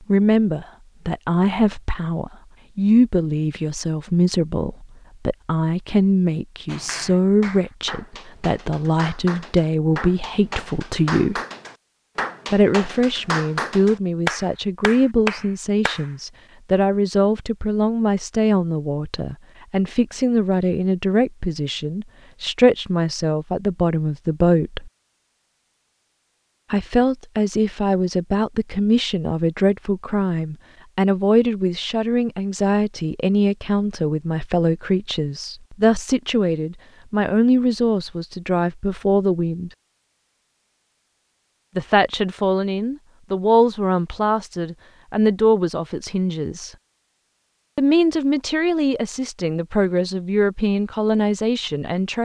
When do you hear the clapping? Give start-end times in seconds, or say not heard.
6.7-16.1.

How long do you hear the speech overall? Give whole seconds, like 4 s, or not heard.
46 s.